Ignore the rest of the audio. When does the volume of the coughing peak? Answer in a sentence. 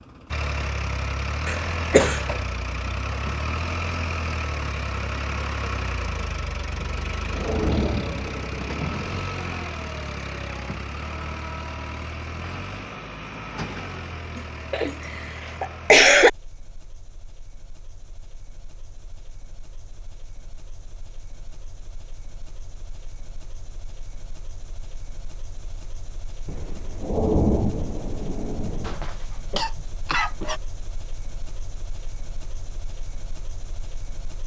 The loudest moment of the coughing is at 16 seconds.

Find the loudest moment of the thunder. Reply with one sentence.
The volume of the thunder peaks at 27 seconds.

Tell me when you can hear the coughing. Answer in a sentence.
The coughing can be heard from 1.4 to 2.5 s, from 14.3 to 16.3 s and from 28.8 to 30.6 s.